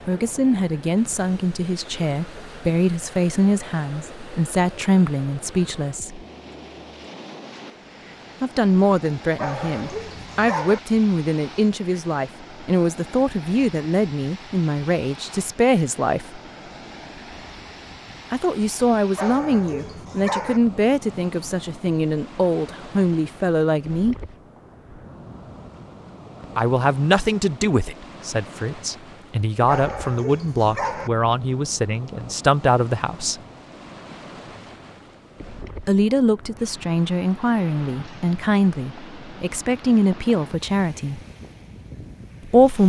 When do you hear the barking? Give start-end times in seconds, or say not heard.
9.3-10.8, 19.1-20.6, 29.6-31.1.